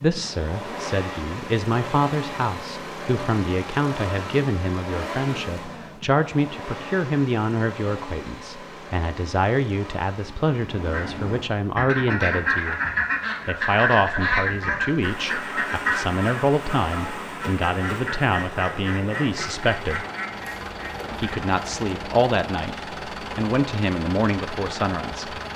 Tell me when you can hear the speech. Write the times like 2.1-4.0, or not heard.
0.0-12.8, 13.4-20.1, 21.1-25.4.